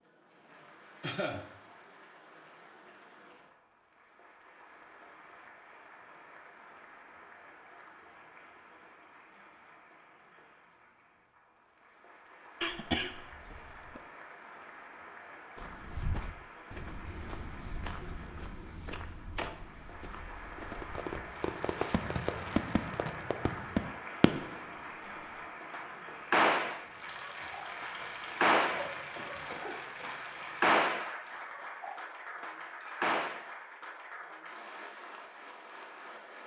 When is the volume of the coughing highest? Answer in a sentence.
The loudest moment of the coughing is at 13 seconds.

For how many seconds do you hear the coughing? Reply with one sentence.
You can hear the coughing for 4 seconds altogether.